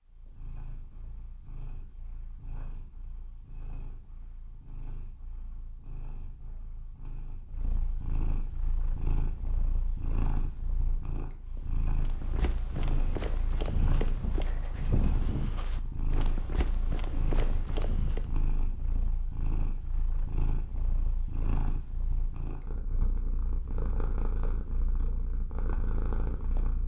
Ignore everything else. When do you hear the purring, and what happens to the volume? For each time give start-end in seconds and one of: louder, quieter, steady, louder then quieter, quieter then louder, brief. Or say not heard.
0.0-26.8 louder.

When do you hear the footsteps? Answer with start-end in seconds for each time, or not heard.
11.9-18.4.